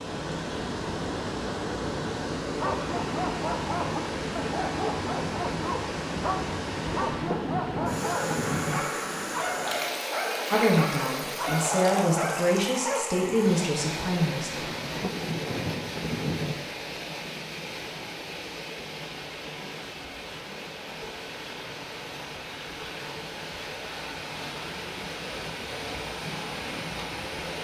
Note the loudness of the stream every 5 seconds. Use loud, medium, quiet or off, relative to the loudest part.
loud, loud, loud, medium, medium, loud.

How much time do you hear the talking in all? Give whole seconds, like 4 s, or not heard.
4 s.